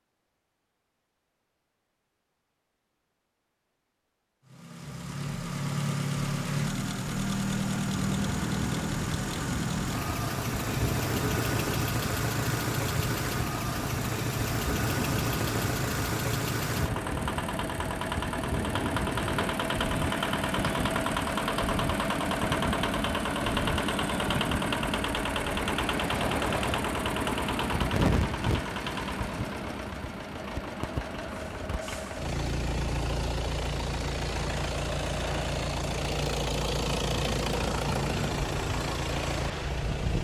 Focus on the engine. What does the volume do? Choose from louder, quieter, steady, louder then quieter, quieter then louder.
steady.